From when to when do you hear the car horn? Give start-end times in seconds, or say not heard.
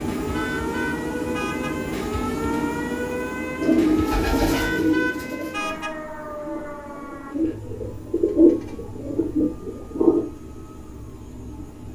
0.3-1.8, 4.5-6.0, 8.4-8.9.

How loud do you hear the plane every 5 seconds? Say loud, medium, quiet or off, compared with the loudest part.
loud, quiet, quiet.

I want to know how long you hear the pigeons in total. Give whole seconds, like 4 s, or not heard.
7 s.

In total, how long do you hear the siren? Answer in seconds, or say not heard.
12 s.